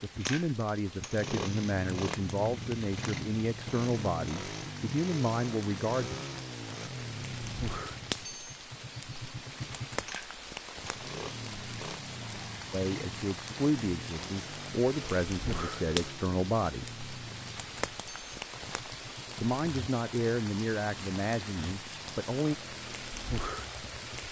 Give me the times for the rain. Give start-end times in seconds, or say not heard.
0.0-24.2.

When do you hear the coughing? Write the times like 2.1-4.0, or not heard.
not heard.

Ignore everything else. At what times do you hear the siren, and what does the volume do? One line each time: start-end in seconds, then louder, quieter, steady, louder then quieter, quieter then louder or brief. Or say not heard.
not heard.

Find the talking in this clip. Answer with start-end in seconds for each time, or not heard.
0.0-6.2, 12.7-16.9, 19.4-22.6.